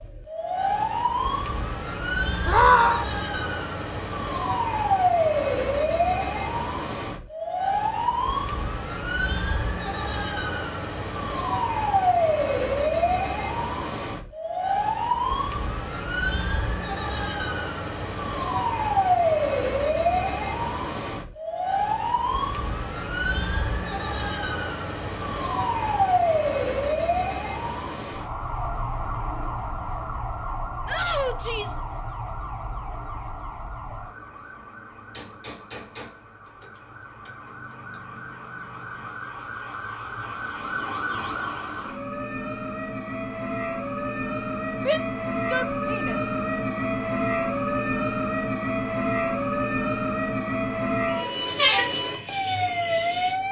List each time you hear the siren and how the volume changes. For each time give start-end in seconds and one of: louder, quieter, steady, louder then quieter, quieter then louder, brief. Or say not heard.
0.0-53.4 quieter then louder.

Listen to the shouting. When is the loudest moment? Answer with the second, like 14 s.
3 s.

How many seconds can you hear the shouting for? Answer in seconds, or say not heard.
3 s.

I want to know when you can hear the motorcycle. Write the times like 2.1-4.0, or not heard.
not heard.